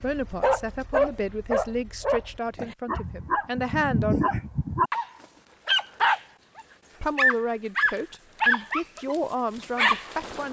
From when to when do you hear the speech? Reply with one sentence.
You can hear the speech from 0.0 to 4.2 s and from 7.0 to 10.4 s.